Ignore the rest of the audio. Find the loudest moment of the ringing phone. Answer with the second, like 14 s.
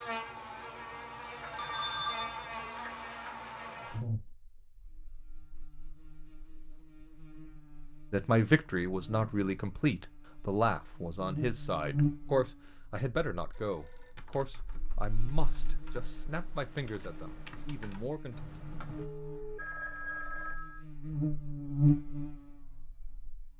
2 s.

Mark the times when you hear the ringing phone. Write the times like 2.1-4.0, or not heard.
1.5-2.8, 13.5-14.2, 18.9-20.9.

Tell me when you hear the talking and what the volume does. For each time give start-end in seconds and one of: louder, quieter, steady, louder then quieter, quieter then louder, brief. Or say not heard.
8.1-18.4 quieter.